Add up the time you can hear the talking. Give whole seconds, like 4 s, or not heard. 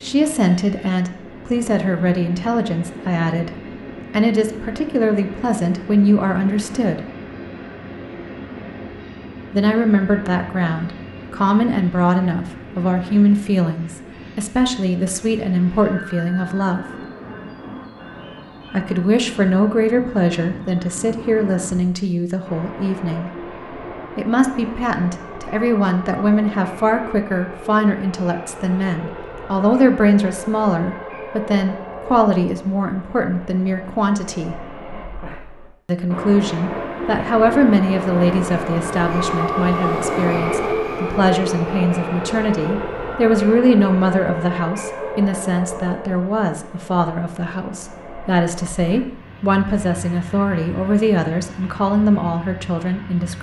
46 s.